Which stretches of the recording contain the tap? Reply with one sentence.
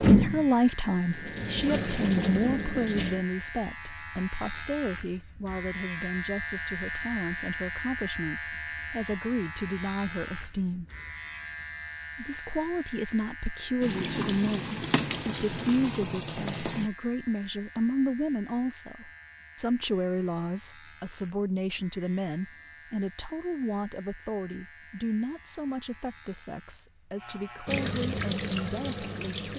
You can hear the tap from 0.0 to 3.2 s, from 13.8 to 16.9 s and from 27.6 to 29.5 s.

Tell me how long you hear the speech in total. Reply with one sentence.
You can hear the speech for 28 seconds altogether.